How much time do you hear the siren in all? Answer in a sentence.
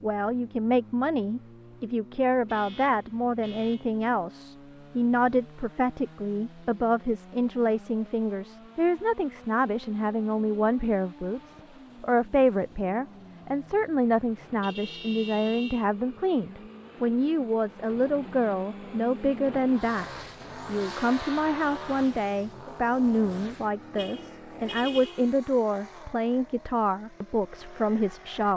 The siren can't be heard in this clip.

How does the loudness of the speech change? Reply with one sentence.
The loudness of the speech stays about the same.